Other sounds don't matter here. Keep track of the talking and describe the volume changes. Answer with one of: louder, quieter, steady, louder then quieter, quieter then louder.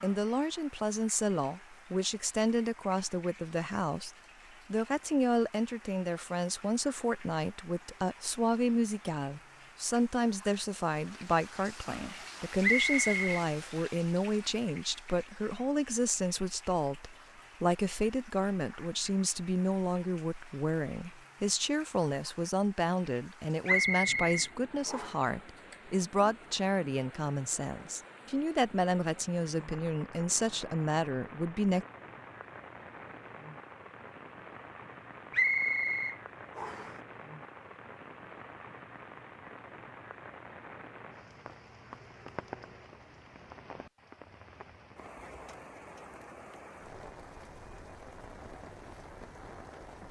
steady.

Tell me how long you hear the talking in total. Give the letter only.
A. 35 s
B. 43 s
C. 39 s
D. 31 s
D.